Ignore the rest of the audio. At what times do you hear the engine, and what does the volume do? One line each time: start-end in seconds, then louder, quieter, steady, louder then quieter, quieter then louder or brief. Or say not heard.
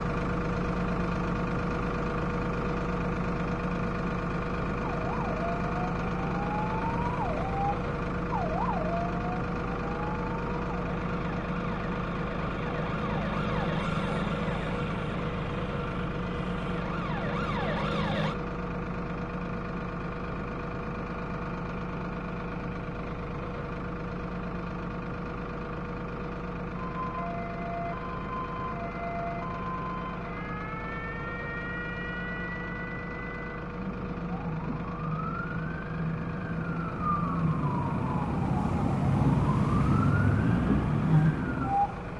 0.0-42.1 quieter.